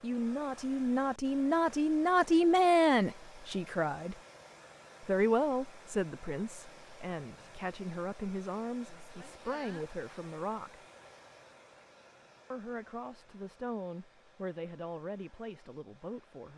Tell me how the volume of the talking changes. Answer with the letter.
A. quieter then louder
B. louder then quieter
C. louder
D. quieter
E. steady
D.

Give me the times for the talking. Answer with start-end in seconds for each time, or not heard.
0.0-4.2, 5.0-10.8, 12.5-16.5.